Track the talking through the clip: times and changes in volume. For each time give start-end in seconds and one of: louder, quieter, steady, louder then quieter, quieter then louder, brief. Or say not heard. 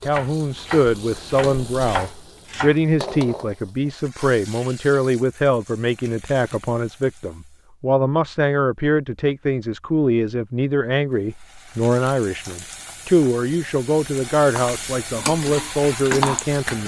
0.1-16.8 steady.